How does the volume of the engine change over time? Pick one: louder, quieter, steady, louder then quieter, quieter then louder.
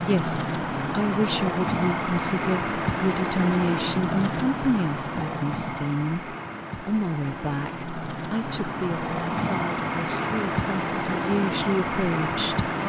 quieter then louder.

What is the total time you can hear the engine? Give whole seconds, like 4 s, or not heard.
13 s.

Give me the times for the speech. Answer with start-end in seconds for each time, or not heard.
0.0-12.8.